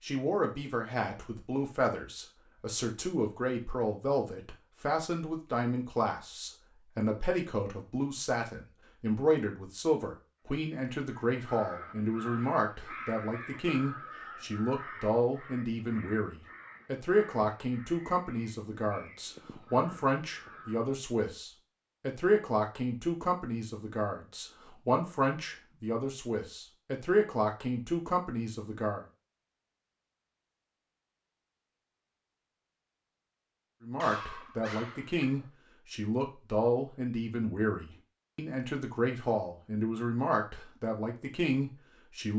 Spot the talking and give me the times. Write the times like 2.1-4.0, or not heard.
0.0-29.0, 33.8-42.3.